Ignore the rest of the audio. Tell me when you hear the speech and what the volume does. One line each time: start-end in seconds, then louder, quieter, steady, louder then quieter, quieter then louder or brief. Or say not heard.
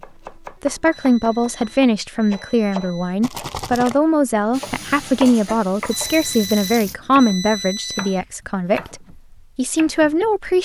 0.6-10.6 steady.